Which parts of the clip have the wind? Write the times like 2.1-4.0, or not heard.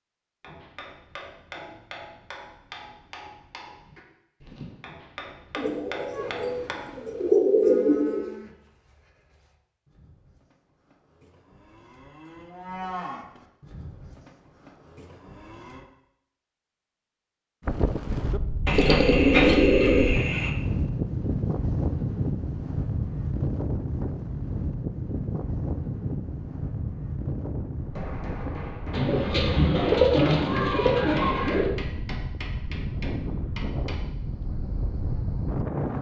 17.6-35.9.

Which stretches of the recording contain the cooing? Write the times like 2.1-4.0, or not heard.
5.5-8.2, 18.6-20.5, 28.9-31.7.